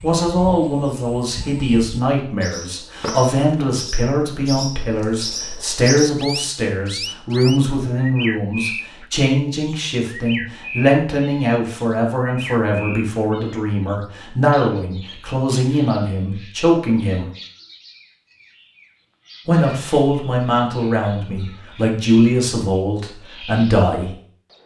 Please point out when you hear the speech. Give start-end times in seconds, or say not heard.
0.0-17.2, 19.4-24.1.